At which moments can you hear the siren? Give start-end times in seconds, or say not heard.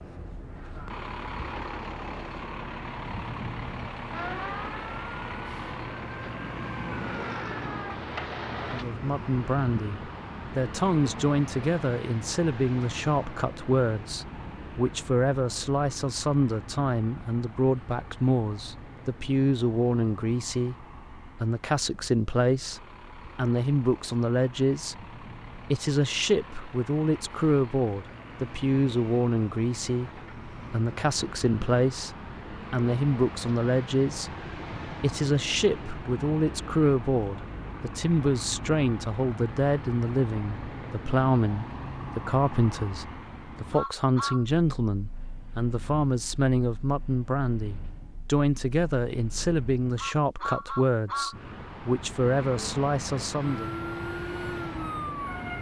4.1-8.8, 53.4-55.5.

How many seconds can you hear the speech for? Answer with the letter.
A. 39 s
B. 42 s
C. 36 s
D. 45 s
D.